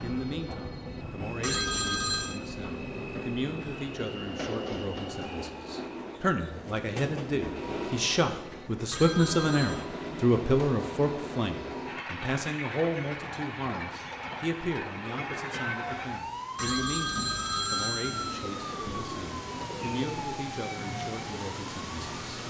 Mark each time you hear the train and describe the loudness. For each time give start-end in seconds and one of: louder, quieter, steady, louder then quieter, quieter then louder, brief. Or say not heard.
0.0-16.2 steady.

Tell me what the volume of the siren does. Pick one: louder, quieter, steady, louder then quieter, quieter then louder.
steady.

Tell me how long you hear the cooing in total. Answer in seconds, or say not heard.
2 s.